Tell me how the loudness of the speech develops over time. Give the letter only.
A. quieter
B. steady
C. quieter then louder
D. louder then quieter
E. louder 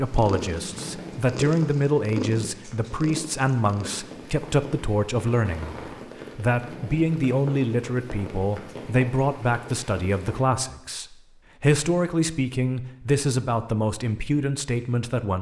B.